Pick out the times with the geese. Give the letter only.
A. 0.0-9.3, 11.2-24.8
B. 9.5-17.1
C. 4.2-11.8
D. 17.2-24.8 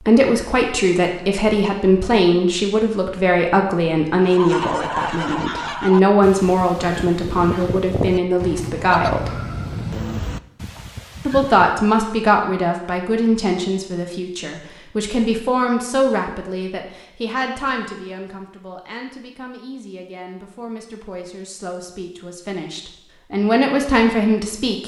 C.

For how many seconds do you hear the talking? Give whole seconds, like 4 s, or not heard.
23 s.